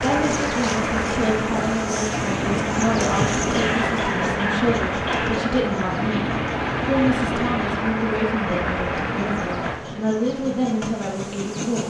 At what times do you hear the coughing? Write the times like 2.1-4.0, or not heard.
3.5-5.5.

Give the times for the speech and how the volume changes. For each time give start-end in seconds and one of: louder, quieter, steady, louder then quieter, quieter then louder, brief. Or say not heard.
0.0-11.8 steady.